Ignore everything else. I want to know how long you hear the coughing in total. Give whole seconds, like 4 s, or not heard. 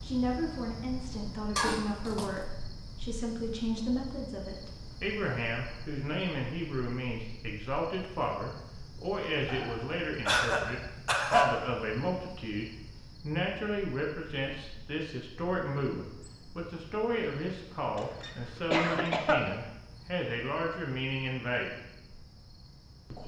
4 s.